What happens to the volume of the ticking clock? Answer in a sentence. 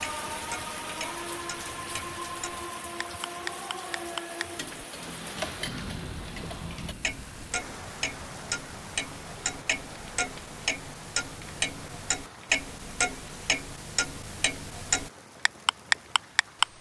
The loudness of the ticking clock goes up.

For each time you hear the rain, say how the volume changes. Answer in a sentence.
You can hear the rain from 0.0 to 16.7 s, getting quieter.